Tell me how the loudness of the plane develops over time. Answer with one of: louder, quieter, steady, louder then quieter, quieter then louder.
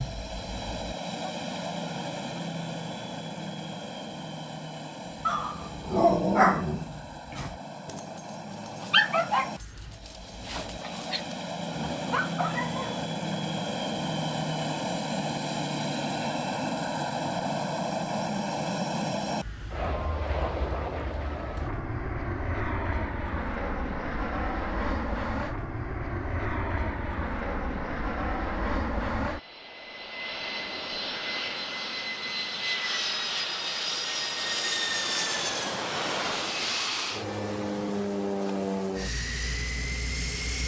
louder.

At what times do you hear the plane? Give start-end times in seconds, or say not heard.
0.0-40.6.